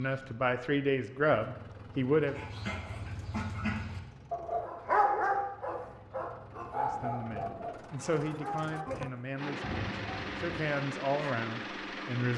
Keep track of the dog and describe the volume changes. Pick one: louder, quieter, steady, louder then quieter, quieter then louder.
louder then quieter.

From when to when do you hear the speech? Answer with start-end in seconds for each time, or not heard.
0.0-2.4, 6.8-12.3.